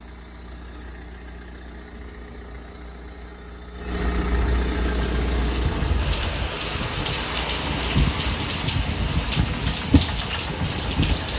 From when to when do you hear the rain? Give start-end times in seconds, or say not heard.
4.8-11.3.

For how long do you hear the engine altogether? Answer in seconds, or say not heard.
11 s.